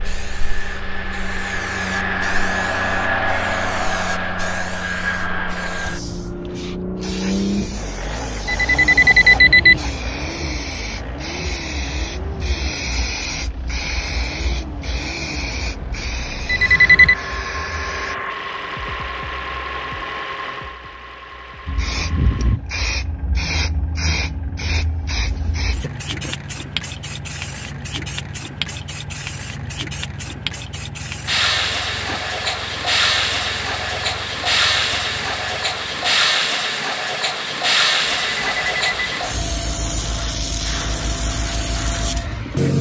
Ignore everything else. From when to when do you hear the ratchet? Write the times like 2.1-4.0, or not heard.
not heard.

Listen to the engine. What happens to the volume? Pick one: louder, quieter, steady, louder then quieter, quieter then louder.
quieter.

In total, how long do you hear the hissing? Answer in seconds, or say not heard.
39 s.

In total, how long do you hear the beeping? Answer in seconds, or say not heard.
3 s.